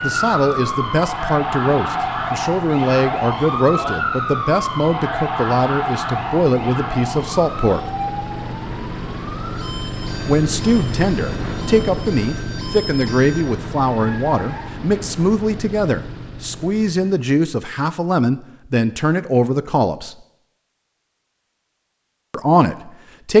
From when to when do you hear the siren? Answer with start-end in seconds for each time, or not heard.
0.0-14.8.